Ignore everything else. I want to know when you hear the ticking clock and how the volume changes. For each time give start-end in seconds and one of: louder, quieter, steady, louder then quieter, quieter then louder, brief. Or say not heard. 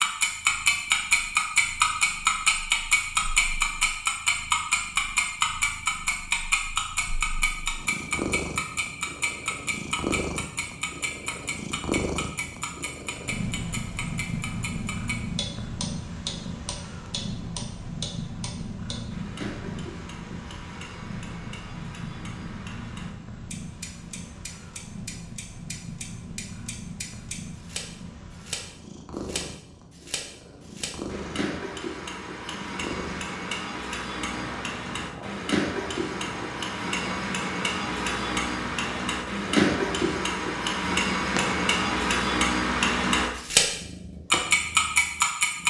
0.0-43.7 quieter then louder
44.3-45.6 brief.